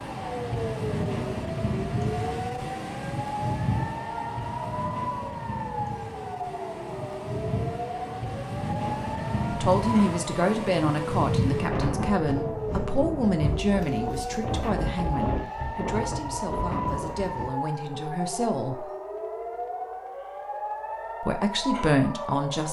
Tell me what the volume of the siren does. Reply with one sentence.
The loudness of the siren stays about the same.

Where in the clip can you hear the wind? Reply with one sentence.
The wind can be heard from 0.0 to 17.5 s.